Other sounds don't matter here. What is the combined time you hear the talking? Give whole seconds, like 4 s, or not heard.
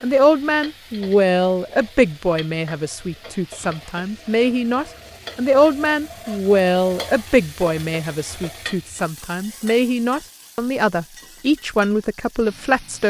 13 s.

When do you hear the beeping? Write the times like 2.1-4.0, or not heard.
not heard.